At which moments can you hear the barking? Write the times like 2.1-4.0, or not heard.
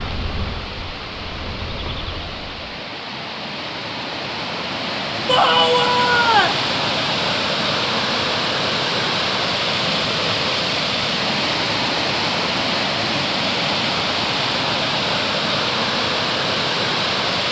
not heard.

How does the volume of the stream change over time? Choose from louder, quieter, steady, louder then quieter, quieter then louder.
louder.